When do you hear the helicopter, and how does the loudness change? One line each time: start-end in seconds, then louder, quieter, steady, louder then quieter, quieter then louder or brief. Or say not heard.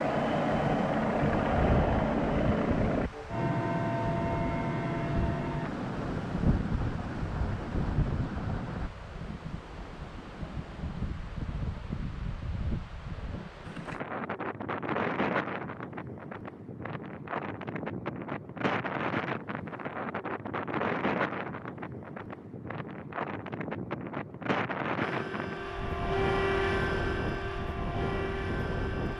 0.0-8.9 quieter
25.0-29.1 louder then quieter.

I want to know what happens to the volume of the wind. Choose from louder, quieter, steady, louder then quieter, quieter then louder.
steady.